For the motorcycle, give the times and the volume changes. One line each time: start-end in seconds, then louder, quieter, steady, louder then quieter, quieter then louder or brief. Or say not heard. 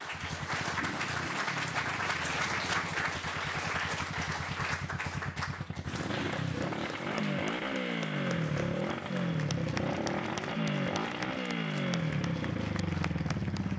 0.1-13.7 louder.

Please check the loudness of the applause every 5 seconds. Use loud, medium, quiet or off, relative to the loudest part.
loud, medium, medium.